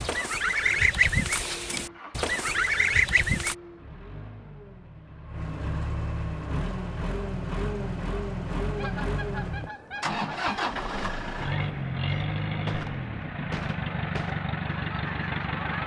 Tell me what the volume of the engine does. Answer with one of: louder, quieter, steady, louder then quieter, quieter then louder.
louder.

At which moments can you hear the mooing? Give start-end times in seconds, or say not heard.
not heard.